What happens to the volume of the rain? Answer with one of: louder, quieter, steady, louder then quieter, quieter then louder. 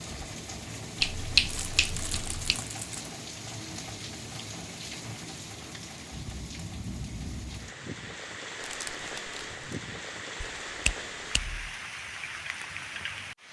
steady.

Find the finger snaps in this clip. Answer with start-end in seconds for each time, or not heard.
1.0-2.6, 10.4-11.7.